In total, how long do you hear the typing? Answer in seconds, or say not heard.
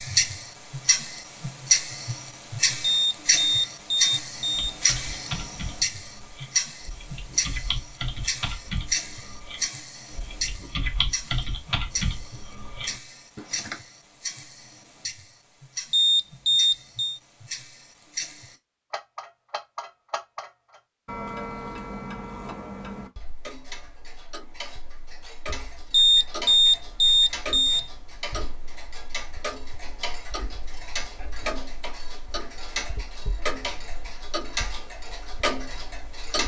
9 s.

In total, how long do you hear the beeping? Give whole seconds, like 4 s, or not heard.
5 s.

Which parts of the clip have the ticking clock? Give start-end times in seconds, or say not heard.
0.0-36.4.